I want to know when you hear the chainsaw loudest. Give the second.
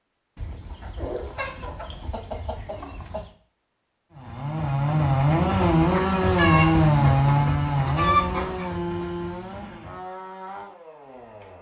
7 s.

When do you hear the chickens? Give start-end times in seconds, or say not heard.
0.3-3.3, 6.2-8.7.